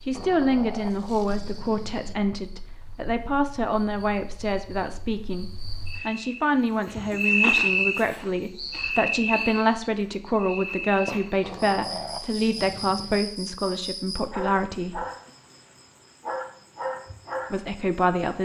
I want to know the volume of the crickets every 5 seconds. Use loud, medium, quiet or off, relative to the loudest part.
quiet, loud, medium, medium.